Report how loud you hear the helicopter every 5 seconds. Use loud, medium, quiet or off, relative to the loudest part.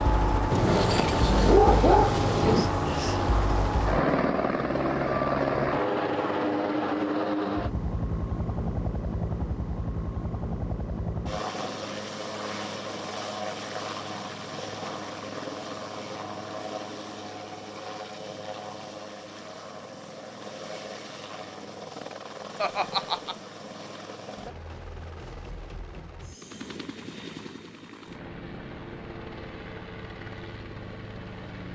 loud, loud, medium, medium, quiet, quiet, quiet.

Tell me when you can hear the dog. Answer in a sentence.
You can hear the dog from 0.5 to 2.7 s.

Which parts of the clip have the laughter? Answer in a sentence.
The laughter can be heard from 22.6 to 23.4 s.